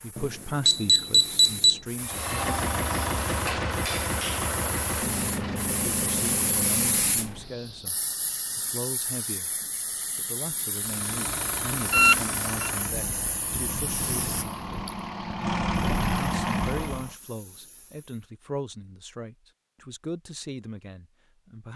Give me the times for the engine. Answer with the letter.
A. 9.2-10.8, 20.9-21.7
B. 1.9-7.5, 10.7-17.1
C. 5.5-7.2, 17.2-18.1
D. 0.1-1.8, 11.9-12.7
B.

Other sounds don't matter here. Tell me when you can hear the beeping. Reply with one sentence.
The beeping can be heard from 0.1 to 1.8 s and from 11.9 to 12.7 s.